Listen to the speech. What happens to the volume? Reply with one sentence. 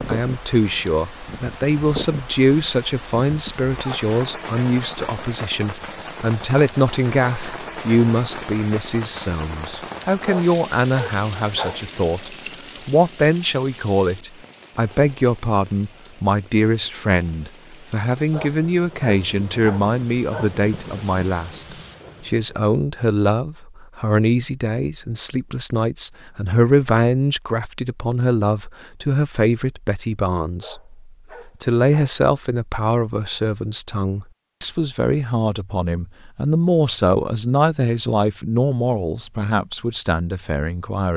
The loudness of the speech stays about the same.